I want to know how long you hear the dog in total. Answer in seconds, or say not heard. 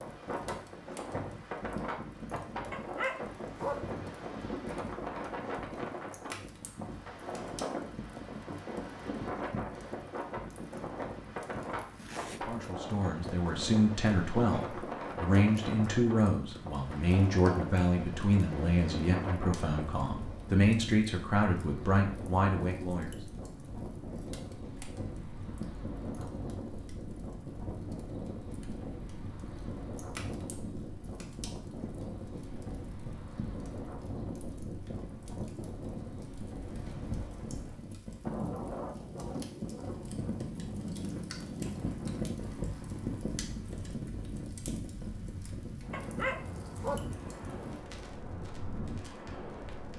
2 s.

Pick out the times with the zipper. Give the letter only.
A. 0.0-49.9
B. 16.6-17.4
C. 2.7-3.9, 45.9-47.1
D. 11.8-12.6
D.